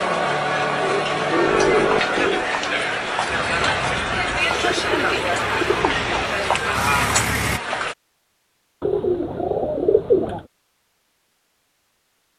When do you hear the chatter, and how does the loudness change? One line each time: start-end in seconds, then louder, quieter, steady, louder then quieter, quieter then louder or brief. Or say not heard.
0.0-8.0 steady.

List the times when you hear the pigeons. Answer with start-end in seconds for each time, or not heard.
0.8-2.5, 4.5-6.1, 8.8-10.4.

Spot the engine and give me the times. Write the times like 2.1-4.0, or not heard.
3.2-7.6.